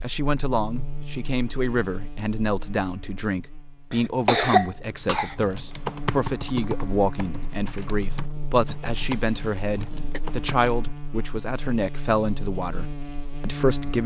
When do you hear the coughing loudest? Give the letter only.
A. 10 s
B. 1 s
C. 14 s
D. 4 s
D.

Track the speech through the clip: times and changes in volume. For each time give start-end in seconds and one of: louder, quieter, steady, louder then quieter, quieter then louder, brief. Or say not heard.
0.0-14.0 steady.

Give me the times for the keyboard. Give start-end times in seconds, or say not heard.
5.3-10.8.